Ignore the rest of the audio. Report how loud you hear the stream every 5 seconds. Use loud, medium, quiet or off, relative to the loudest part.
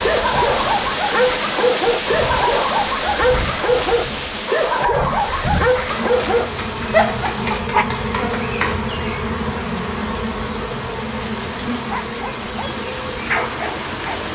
loud, medium, medium.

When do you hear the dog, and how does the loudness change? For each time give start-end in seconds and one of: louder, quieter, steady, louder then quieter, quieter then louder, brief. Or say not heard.
0.0-7.8 steady
11.8-14.2 brief.